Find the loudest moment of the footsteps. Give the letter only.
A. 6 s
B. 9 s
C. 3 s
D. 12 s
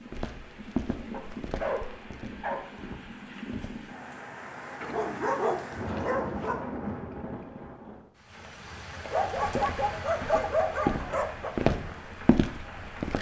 D.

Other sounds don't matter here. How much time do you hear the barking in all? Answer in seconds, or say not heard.
6 s.